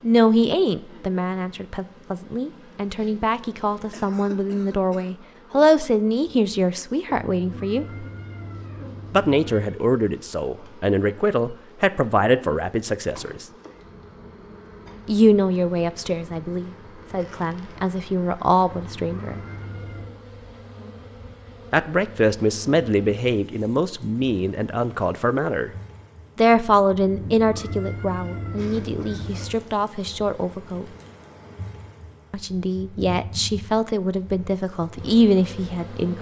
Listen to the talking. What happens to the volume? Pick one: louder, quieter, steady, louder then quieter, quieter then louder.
steady.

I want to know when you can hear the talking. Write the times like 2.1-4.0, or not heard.
0.0-8.1, 9.1-13.4, 15.1-19.4, 21.7-25.7, 26.4-30.9, 32.3-36.1.